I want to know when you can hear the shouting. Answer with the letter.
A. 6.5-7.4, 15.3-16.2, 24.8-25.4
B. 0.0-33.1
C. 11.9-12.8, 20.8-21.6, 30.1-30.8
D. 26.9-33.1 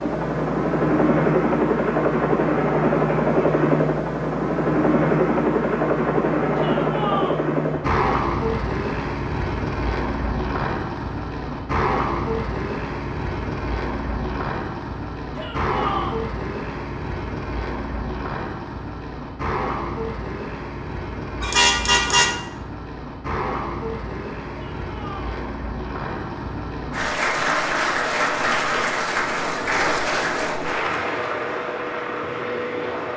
A.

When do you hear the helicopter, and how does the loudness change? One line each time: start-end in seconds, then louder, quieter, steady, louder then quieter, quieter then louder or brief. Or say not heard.
0.0-33.1 quieter.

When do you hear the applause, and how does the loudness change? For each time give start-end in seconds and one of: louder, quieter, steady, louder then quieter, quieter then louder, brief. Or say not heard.
26.9-33.1 quieter.